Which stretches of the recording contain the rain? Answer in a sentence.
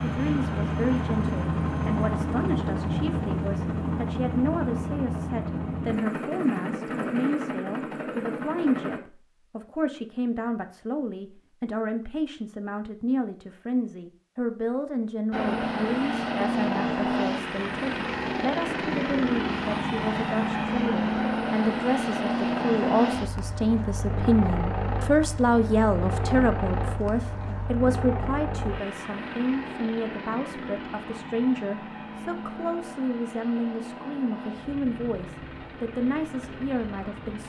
The rain can't be heard in this clip.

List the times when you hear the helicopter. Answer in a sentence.
You can hear the helicopter from 0.0 to 9.0 s and from 15.3 to 37.4 s.